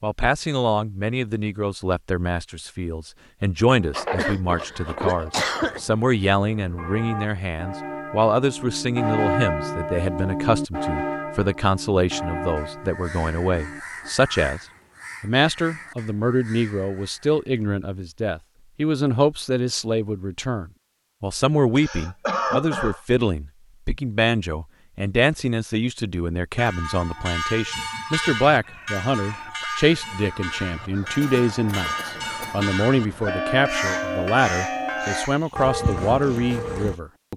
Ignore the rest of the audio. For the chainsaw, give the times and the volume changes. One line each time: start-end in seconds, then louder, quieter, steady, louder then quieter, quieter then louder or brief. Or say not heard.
not heard.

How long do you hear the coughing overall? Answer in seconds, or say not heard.
5 s.